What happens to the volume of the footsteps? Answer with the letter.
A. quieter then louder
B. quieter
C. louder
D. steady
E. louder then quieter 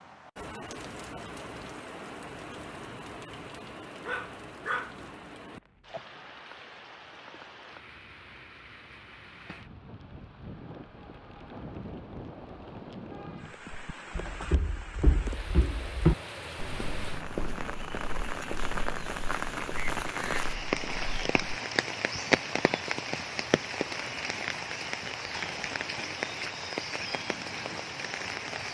E.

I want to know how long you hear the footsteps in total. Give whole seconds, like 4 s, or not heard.
8 s.